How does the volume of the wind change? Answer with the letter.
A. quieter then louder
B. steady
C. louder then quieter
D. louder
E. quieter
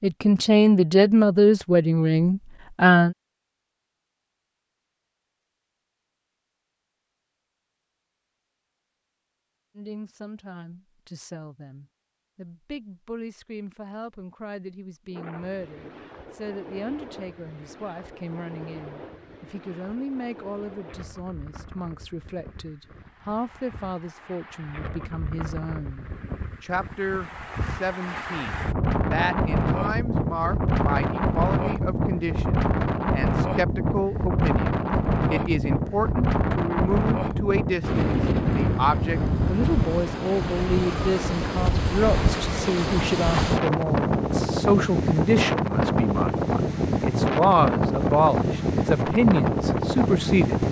D.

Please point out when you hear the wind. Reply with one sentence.
The wind can be heard from 15.1 to 50.6 s.